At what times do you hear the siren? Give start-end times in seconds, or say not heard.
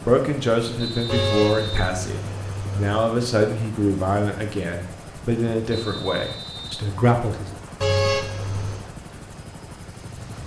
not heard.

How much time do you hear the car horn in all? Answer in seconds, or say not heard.
3 s.